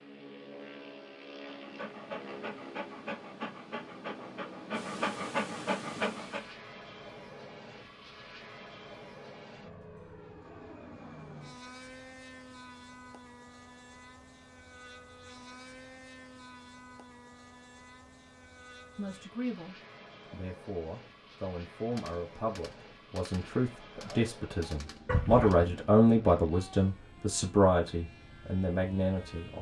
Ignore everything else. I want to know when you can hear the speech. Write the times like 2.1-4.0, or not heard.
18.9-29.5.